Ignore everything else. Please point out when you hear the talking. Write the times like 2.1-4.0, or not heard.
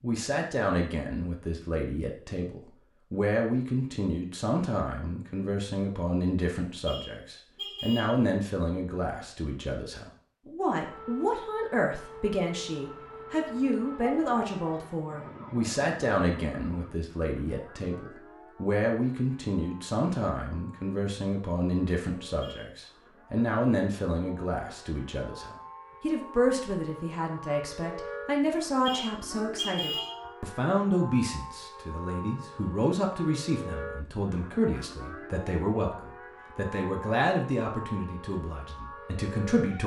0.0-39.8.